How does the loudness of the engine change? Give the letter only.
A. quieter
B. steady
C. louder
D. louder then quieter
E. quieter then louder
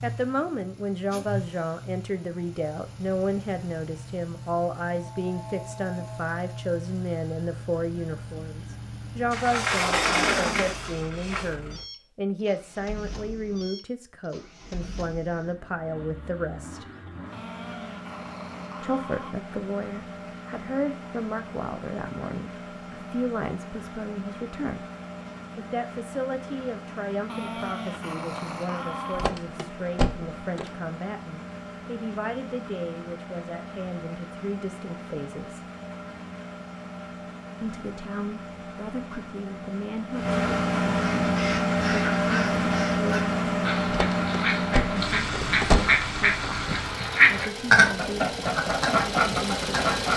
C.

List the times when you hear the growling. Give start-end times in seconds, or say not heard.
17.3-19.4, 27.2-29.3.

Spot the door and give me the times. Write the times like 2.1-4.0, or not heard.
9.3-11.6, 29.1-30.6, 43.9-46.0.